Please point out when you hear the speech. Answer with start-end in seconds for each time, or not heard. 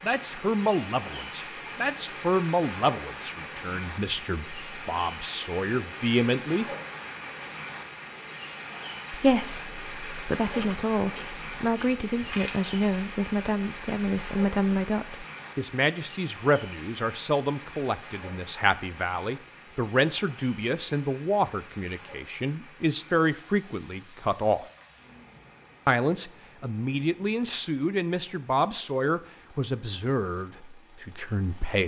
0.0-6.7, 9.1-24.6, 25.9-31.8.